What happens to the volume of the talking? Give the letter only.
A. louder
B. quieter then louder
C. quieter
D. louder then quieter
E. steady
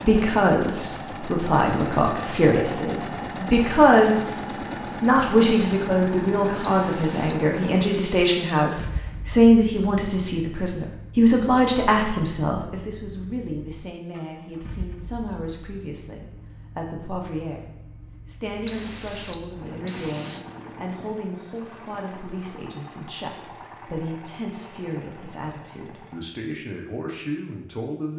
C.